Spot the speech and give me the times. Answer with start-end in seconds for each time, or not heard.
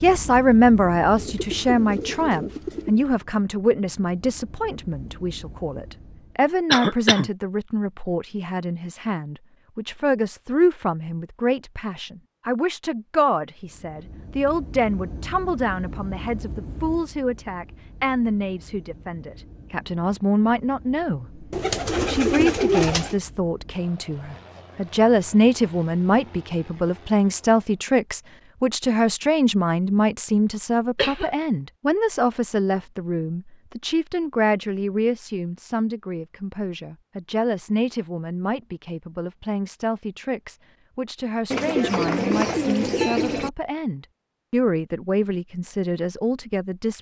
0.0-21.4, 22.1-46.9.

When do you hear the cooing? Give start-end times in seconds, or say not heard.
1.1-3.0, 21.5-23.1, 41.5-43.5.